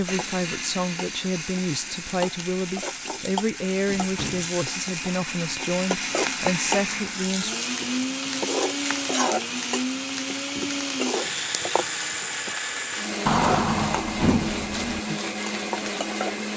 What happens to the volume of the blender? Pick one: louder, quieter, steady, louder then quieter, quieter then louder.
louder.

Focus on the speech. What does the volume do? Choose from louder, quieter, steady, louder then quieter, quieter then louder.
steady.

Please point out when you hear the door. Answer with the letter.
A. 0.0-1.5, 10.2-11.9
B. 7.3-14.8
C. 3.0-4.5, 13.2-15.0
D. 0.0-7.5
C.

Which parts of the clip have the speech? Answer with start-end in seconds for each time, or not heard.
0.0-7.5.